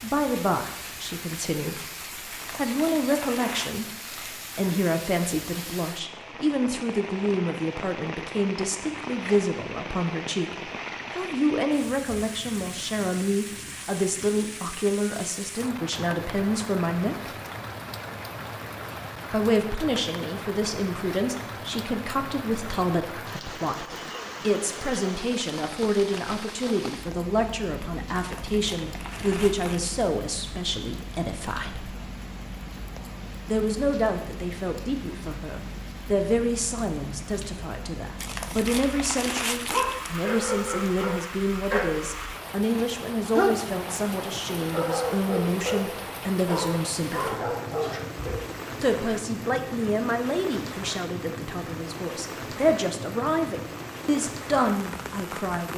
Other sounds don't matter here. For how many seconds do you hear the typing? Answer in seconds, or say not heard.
not heard.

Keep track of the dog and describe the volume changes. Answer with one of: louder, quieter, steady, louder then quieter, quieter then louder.
steady.